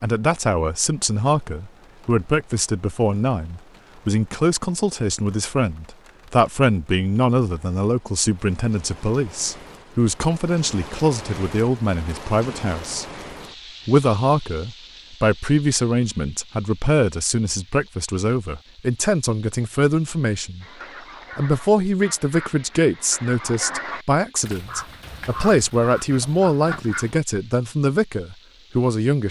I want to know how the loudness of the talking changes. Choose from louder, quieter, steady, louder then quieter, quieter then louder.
steady.